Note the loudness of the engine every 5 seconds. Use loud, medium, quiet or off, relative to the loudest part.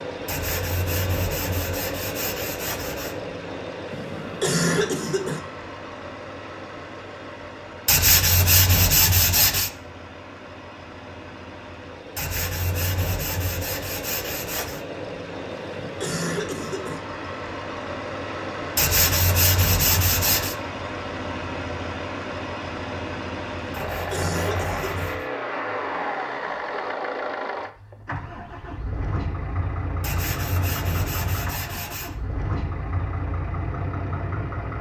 loud, medium, medium, loud, loud, loud, loud.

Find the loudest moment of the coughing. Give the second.
5 s.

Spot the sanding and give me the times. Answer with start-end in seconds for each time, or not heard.
0.2-3.1, 7.8-9.7, 12.2-14.8, 18.8-20.6, 23.7-25.3, 30.0-32.1.